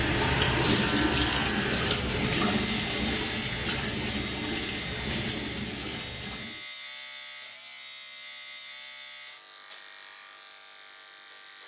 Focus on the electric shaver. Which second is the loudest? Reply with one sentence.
The volume of the electric shaver peaks at 1 second.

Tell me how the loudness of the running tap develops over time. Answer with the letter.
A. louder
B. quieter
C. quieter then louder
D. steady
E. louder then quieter
B.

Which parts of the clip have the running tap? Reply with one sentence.
The running tap can be heard from 0.0 to 6.7 s.